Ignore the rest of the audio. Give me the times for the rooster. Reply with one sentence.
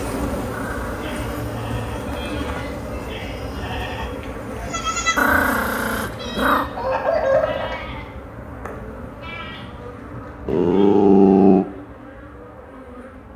You can hear the rooster from 6.8 to 7.8 s.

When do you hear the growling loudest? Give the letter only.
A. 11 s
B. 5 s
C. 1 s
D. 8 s
A.